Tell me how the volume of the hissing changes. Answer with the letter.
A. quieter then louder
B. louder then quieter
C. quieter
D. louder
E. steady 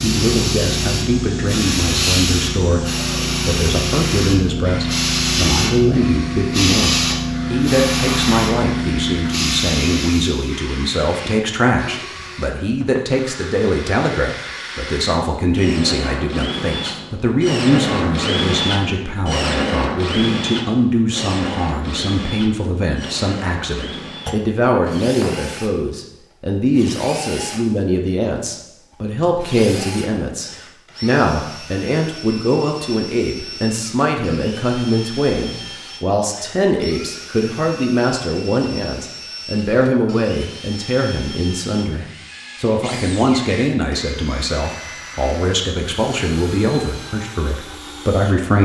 E.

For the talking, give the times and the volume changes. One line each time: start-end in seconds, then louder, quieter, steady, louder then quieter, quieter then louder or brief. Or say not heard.
0.0-48.5 steady.